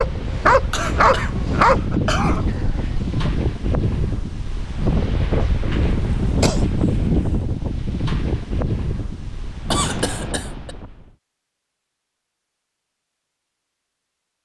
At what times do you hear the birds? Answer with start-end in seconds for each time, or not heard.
not heard.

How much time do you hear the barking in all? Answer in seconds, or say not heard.
3 s.